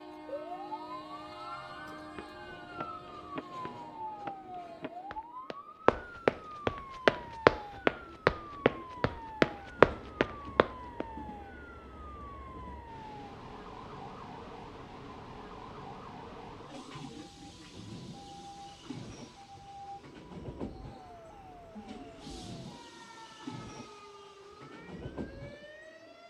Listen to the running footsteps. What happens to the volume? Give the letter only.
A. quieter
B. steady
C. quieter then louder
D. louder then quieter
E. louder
E.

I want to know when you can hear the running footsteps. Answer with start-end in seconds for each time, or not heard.
1.6-11.1.